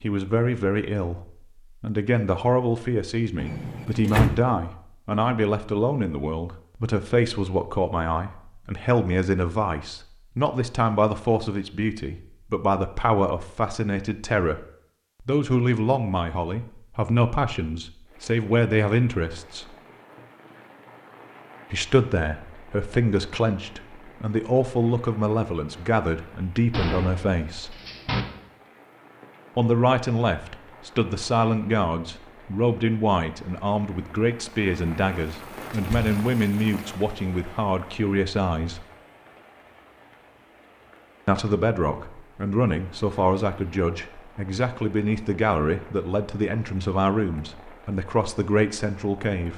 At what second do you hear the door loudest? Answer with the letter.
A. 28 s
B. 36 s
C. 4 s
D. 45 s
C.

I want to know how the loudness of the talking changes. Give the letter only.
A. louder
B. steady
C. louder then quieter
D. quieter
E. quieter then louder
B.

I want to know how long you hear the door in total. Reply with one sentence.
You can hear the door for 3 seconds altogether.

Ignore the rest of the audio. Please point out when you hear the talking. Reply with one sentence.
The talking can be heard from 0.0 to 19.8 s, from 21.7 to 27.8 s, from 29.6 to 38.9 s and from 41.2 to 49.5 s.